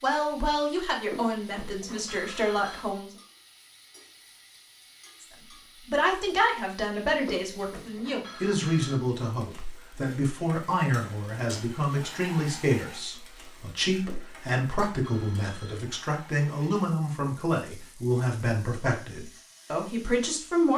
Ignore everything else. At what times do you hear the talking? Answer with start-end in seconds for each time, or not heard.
0.0-3.1, 5.8-20.7.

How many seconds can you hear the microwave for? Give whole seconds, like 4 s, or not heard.
not heard.